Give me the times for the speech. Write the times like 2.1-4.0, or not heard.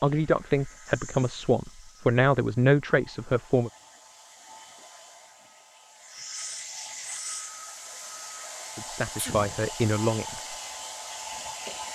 0.0-3.7, 8.8-10.6.